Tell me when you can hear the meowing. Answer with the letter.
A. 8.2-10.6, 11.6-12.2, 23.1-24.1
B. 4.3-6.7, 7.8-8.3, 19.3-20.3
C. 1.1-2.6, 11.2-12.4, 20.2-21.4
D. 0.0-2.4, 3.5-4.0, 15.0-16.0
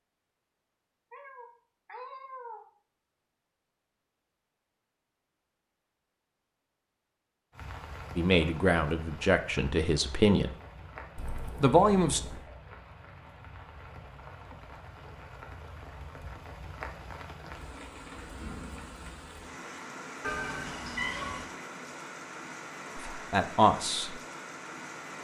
C.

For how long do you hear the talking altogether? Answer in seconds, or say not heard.
4 s.